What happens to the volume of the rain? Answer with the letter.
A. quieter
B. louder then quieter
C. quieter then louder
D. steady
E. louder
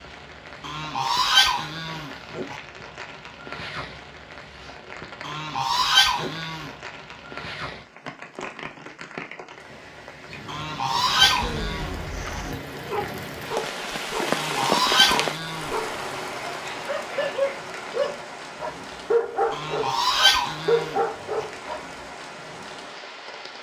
B.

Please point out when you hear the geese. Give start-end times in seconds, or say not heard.
0.6-2.6, 5.2-6.7, 10.4-12.4, 14.2-16.2, 19.5-21.4.